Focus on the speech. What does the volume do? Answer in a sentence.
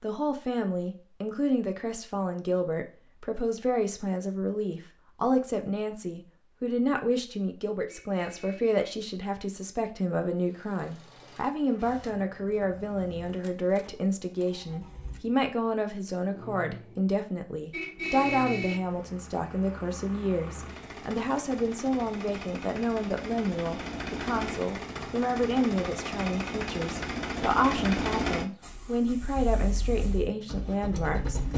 The volume of the speech stays about the same.